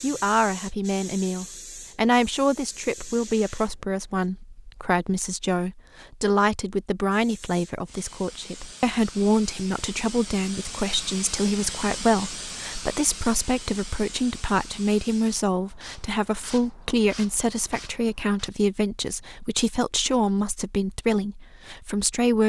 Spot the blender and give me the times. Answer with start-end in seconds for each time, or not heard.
not heard.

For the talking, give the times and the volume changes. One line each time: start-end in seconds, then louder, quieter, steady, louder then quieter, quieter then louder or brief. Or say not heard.
0.0-22.4 steady.